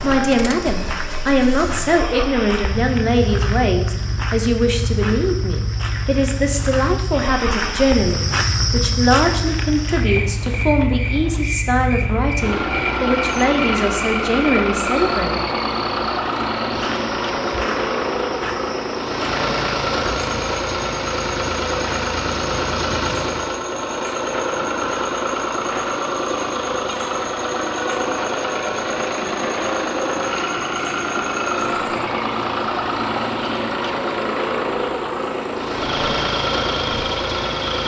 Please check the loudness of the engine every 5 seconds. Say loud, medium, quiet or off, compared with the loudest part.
medium, medium, loud, loud, loud, loud, loud, loud.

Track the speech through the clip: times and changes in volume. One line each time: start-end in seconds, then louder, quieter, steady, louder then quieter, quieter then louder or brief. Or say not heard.
0.0-15.3 steady.